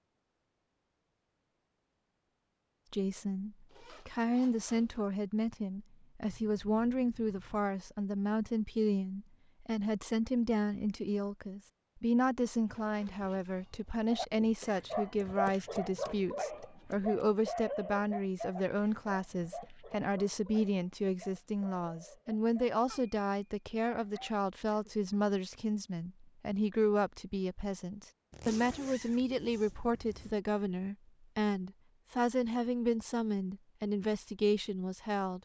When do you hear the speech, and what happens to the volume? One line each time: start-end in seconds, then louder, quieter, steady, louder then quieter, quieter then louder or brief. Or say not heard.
2.9-35.3 steady.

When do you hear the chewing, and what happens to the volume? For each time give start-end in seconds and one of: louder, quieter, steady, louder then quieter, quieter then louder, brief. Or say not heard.
not heard.